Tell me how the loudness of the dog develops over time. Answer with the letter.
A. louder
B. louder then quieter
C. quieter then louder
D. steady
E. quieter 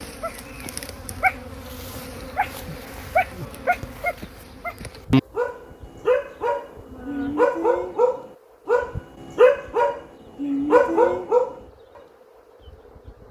A.